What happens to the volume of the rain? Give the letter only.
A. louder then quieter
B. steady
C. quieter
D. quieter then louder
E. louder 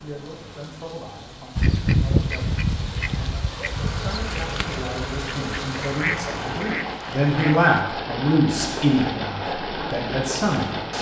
E.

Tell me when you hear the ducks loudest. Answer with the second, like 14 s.
2 s.